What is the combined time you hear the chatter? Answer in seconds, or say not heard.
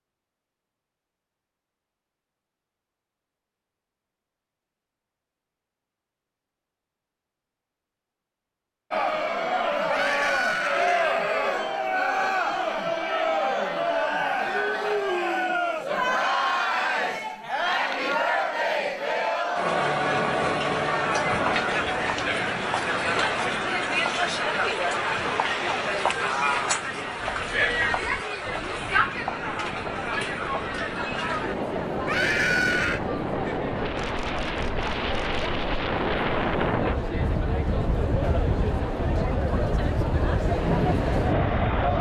33 s.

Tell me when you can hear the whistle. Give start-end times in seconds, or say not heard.
not heard.